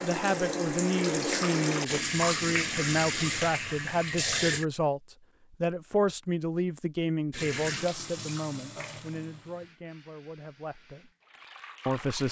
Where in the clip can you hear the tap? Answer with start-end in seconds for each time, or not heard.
0.0-4.7, 7.3-12.2.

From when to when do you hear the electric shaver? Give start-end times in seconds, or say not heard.
not heard.